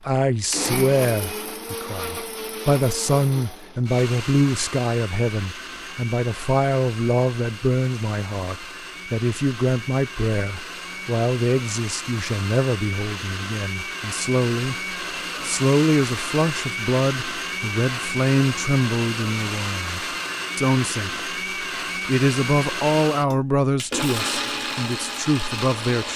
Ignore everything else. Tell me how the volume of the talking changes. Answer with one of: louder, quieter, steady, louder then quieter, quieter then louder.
steady.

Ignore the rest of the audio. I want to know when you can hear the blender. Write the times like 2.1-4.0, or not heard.
0.0-26.1.